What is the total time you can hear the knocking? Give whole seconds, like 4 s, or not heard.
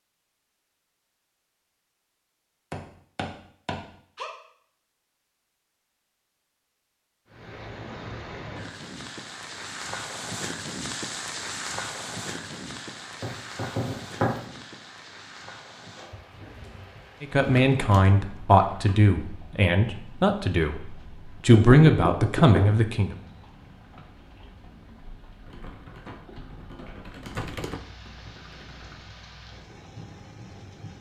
4 s.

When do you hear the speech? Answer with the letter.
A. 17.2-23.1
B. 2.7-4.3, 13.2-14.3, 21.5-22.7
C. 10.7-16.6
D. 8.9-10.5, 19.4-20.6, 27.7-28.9
A.